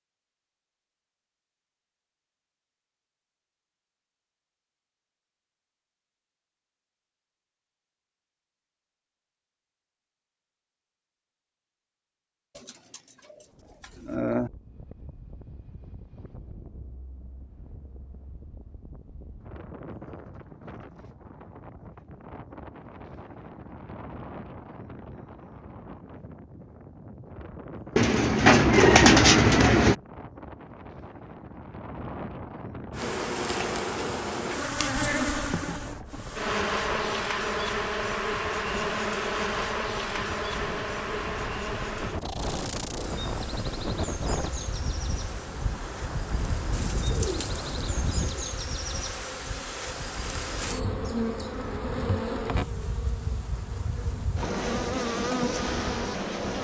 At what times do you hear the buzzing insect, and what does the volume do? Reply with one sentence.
You can hear the buzzing insect from 32.9 to 56.5 s, getting quieter then louder.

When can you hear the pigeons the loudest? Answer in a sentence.
The loudest moment of the pigeons is at 29 seconds.